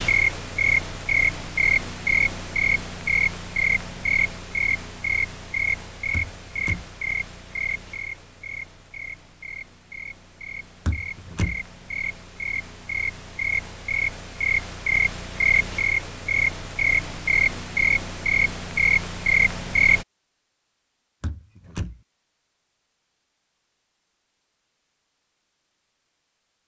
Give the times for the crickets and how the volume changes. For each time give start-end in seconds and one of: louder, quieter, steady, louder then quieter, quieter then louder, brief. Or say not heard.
0.0-20.1 quieter then louder.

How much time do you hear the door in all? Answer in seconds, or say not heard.
2 s.